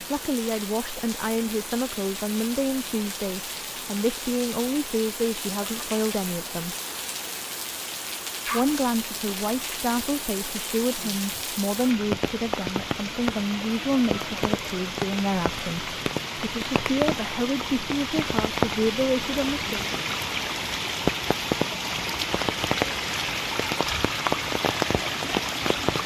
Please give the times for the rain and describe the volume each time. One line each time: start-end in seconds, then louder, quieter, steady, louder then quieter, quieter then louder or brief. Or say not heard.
0.0-26.0 louder.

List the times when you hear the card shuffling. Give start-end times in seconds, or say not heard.
not heard.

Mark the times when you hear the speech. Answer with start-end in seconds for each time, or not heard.
0.0-6.8, 8.4-19.9.